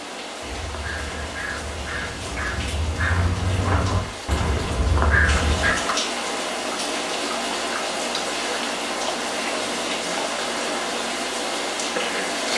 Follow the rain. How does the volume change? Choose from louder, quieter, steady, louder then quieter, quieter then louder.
louder.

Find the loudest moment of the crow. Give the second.
5 s.